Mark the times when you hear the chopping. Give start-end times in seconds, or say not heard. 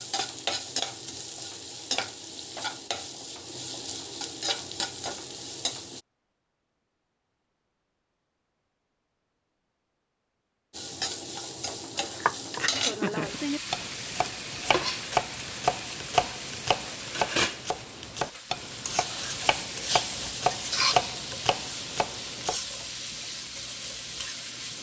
12.0-22.6.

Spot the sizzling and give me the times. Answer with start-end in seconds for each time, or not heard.
0.0-6.0, 10.7-24.7.